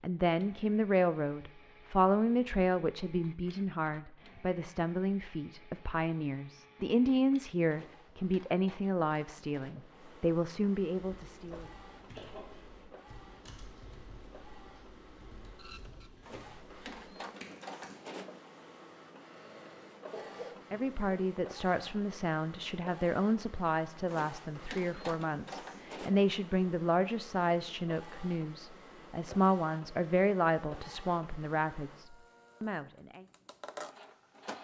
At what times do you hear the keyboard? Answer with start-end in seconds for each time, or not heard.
11.1-18.1.